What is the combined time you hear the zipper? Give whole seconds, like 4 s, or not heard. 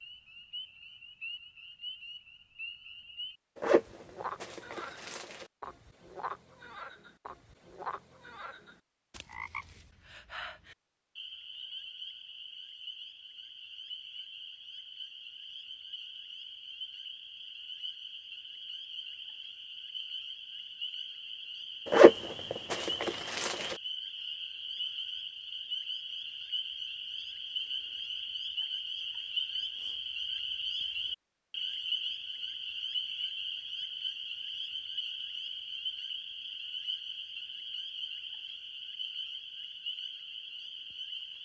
4 s.